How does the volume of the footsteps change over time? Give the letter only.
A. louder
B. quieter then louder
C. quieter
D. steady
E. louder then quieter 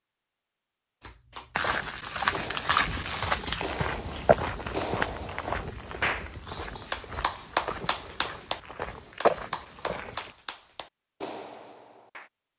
B.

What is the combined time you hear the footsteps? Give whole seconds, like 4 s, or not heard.
9 s.